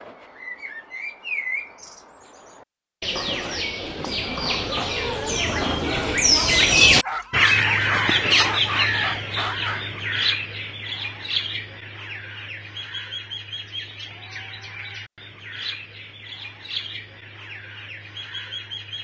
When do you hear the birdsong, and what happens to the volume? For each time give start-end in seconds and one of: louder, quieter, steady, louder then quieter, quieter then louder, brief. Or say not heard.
0.0-18.9 louder then quieter.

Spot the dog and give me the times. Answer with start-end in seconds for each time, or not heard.
7.0-9.8.